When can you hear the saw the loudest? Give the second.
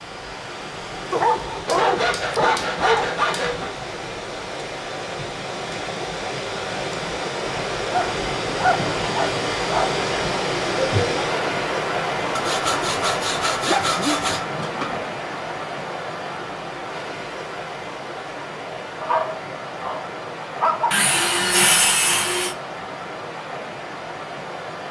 22 s.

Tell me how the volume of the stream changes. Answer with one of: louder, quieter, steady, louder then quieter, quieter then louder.
louder then quieter.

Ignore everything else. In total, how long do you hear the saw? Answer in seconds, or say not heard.
6 s.